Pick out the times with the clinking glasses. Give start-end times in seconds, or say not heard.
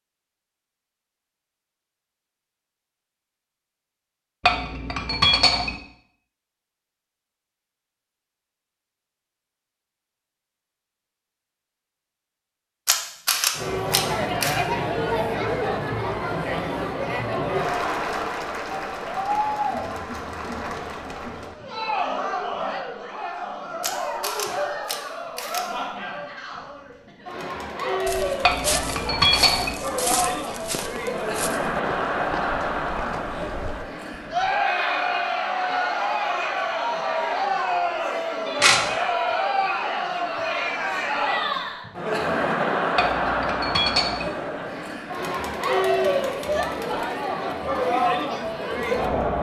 4.5-5.8, 28.4-29.8, 43.0-44.3.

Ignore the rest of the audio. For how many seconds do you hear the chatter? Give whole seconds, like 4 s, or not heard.
36 s.